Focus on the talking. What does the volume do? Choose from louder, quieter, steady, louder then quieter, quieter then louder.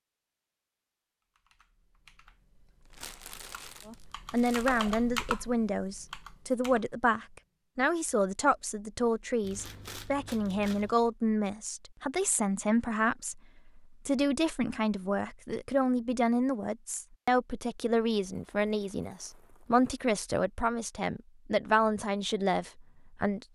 steady.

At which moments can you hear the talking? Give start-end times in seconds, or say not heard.
3.9-23.4.